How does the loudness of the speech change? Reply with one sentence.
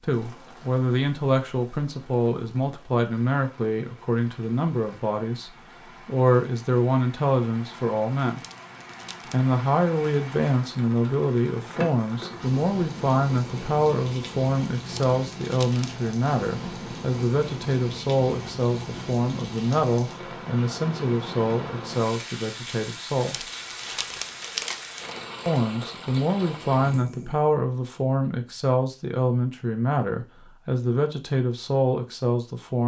The volume of the speech stays about the same.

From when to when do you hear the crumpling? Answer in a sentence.
The crumpling can be heard from 8.3 to 9.4 s, from 14.8 to 16.1 s and from 23.2 to 25.3 s.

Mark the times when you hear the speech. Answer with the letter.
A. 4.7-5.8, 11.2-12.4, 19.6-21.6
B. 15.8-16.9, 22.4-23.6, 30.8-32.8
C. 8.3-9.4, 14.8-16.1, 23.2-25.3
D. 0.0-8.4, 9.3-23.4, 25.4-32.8
D.